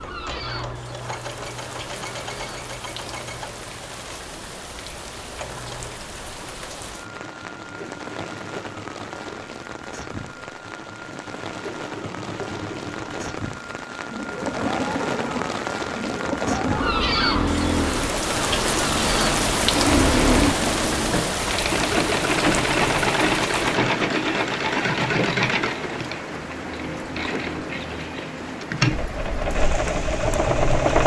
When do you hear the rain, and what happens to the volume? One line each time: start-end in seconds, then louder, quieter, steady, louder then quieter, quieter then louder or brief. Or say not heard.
0.0-31.0 louder then quieter.